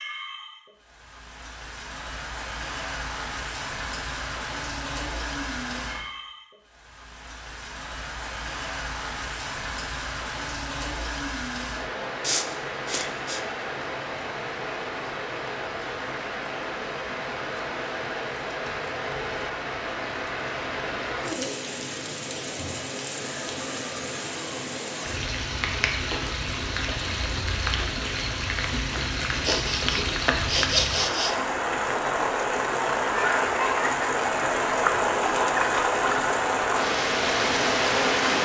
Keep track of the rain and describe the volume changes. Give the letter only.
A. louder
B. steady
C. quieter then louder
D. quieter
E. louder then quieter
A.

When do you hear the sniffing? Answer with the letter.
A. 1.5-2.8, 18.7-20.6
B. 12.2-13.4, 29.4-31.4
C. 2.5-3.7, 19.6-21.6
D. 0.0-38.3
B.